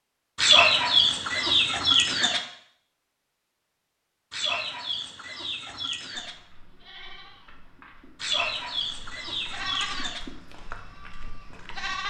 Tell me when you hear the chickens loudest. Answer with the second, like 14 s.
1 s.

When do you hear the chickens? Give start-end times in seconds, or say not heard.
0.3-2.4, 4.3-6.3, 8.2-10.2.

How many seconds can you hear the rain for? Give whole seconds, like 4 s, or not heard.
not heard.